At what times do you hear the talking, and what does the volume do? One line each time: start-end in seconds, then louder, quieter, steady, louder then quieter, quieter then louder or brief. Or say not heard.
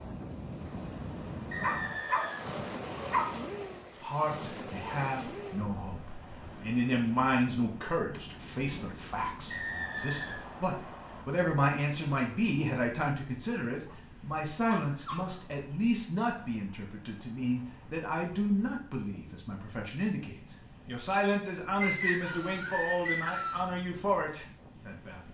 4.0-25.2 steady.